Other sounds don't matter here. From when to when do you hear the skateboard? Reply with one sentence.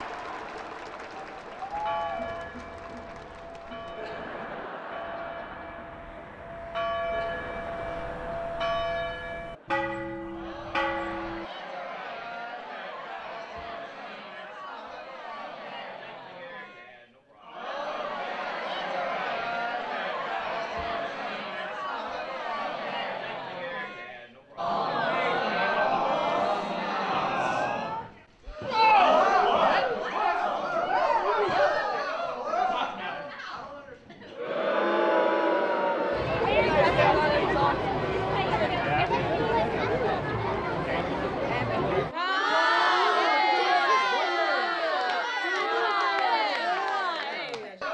You can't hear the skateboard here.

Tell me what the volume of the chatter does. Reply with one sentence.
The volume of the chatter goes up.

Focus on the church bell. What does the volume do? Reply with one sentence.
The loudness of the church bell goes up.